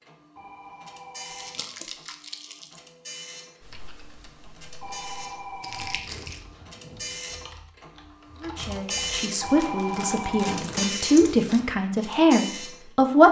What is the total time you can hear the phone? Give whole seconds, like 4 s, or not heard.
6 s.